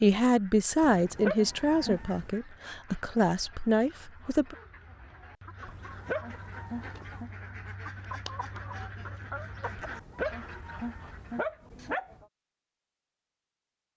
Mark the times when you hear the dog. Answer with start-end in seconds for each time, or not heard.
0.8-2.3, 5.7-7.3, 9.8-12.2.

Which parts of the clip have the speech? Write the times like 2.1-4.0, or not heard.
0.0-4.5.